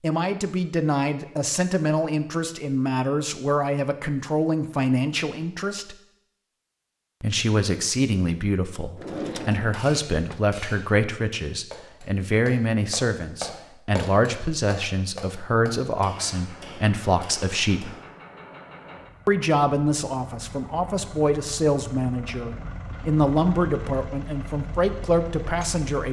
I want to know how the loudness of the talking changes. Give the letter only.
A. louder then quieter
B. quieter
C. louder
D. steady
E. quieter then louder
D.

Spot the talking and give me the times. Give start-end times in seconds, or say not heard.
0.0-6.0, 7.2-17.9, 19.2-26.0.